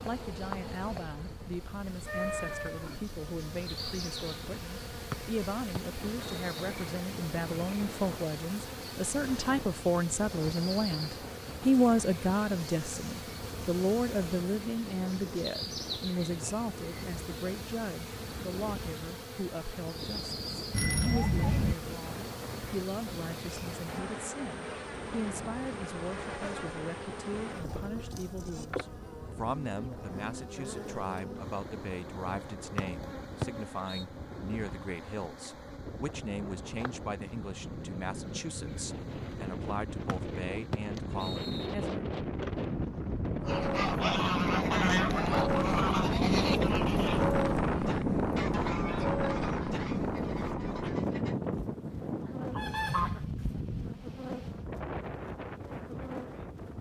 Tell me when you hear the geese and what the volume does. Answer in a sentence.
The geese can be heard from 43.5 to 53.6 s, getting quieter then louder.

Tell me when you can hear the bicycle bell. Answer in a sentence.
The bicycle bell can be heard from 20.7 to 21.8 s.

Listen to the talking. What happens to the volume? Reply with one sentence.
The loudness of the talking goes up, then down.